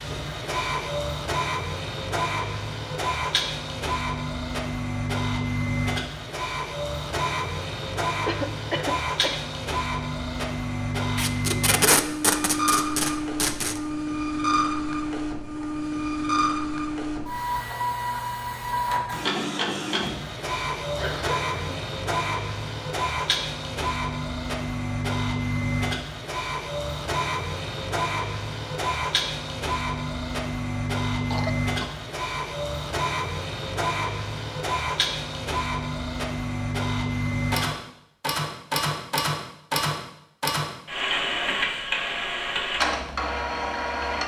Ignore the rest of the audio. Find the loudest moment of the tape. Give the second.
12 s.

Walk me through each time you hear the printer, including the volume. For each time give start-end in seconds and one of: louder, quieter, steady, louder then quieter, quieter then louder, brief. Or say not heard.
0.0-44.2 steady.